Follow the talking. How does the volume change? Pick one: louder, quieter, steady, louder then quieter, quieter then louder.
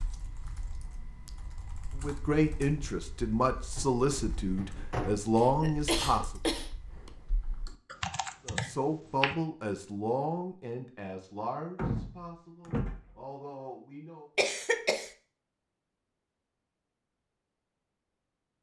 quieter.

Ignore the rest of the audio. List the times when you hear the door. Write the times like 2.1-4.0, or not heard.
3.8-5.4, 11.8-13.2.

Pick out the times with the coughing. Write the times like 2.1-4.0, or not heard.
5.3-7.1, 14.3-15.1.